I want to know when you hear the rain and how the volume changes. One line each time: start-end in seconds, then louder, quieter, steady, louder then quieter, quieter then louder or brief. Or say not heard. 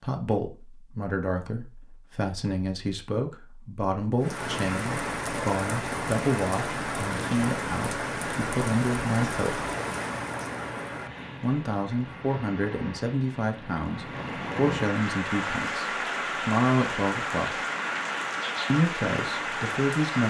4.2-20.2 quieter then louder.